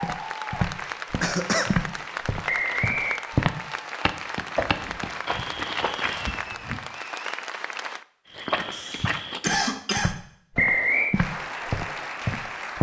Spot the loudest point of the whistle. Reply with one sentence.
The loudest moment of the whistle is at 11 seconds.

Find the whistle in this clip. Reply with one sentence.
The whistle can be heard from 2.5 to 3.2 s and from 10.6 to 11.2 s.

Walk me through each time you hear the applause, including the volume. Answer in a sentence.
The applause can be heard from 0.0 to 8.1 s, at a steady volume; and briefly from 11.1 to 12.7 s.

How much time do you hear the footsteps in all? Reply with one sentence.
You can hear the footsteps for 11 seconds altogether.